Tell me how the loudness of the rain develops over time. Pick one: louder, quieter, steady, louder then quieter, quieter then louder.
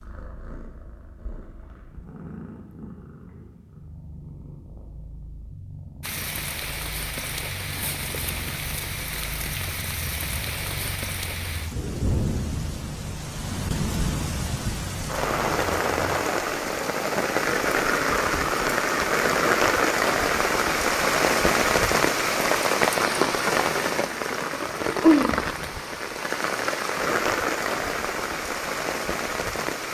louder.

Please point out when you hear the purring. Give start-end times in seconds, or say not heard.
0.0-16.2.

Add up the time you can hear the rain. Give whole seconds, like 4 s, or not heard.
24 s.